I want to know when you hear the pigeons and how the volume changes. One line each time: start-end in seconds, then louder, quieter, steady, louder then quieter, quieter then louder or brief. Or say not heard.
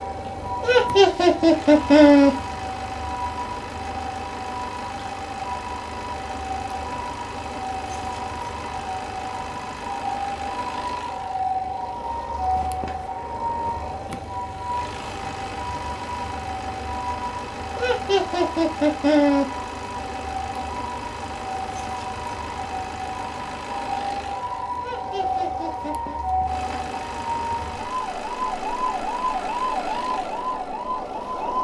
not heard.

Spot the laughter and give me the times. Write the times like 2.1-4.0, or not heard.
0.6-2.4, 17.8-19.4, 24.8-26.2.